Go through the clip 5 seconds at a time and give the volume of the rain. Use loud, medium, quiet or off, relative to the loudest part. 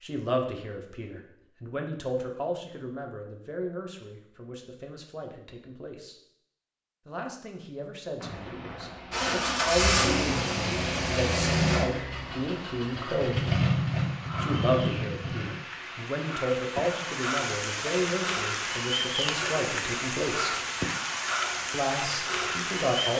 off, medium, medium, loud, loud.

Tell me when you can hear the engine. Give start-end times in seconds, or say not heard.
9.1-15.6.